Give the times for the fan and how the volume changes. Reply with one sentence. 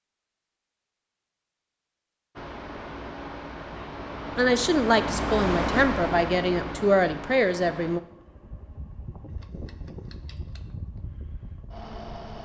The fan can be heard from 2.4 to 12.4 s, getting louder then quieter.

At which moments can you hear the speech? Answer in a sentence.
The speech can be heard from 4.3 to 8.0 s.